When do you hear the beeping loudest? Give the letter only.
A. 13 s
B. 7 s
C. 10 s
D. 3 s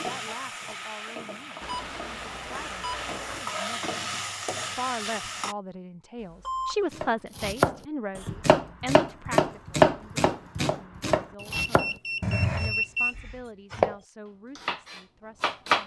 A.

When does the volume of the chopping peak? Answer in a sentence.
The loudest moment of the chopping is at 10 seconds.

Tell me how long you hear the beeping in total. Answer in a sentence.
The beeping can be heard for 4 seconds in total.